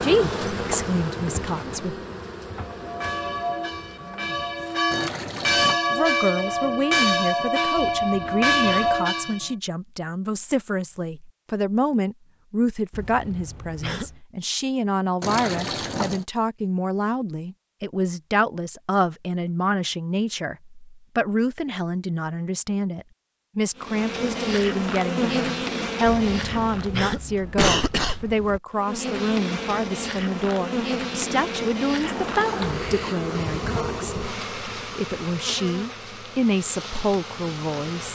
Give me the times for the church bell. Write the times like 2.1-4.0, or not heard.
2.6-9.5.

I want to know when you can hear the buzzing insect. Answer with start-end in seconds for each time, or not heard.
0.0-5.0, 23.8-27.1, 28.8-38.1.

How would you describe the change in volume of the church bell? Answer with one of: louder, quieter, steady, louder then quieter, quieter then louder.
louder.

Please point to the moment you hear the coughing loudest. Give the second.
28 s.